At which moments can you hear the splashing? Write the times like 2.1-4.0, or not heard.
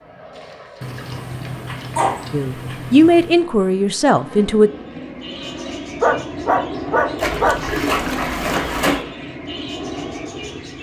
0.3-2.3, 7.2-9.1.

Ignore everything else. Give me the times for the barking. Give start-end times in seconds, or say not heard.
0.8-3.4, 6.0-7.6.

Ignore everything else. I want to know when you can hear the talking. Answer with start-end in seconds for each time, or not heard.
2.3-4.7.